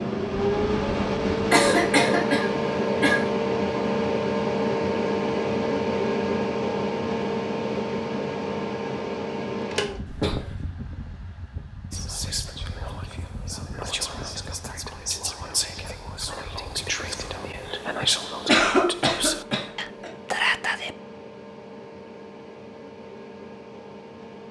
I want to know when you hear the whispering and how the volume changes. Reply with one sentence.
The whispering can be heard from 11.9 to 20.9 s, getting louder.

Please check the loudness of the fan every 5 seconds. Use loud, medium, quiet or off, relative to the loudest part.
loud, loud, quiet, quiet, quiet.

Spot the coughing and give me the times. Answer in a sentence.
The coughing can be heard from 1.5 to 3.3 s, from 10.1 to 10.7 s and from 18.4 to 20.1 s.